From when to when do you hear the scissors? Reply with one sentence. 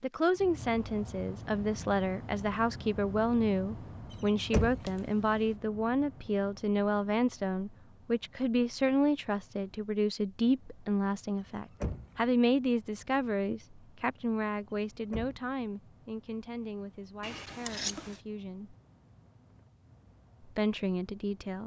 The scissors can be heard from 4.8 to 5.5 s and from 17.2 to 18.2 s.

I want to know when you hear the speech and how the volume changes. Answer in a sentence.
You can hear the speech from 0.0 to 18.8 s, getting quieter; and briefly from 20.4 to 21.6 s.